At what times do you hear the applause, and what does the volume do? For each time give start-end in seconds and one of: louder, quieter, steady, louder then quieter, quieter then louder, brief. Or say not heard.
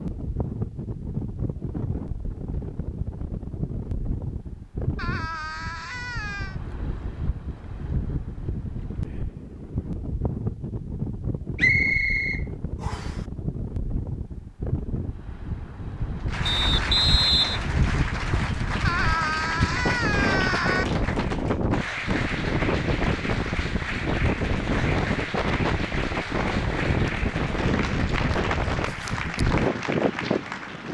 16.2-30.8 steady.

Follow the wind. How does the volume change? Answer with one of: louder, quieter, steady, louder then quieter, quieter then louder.
louder.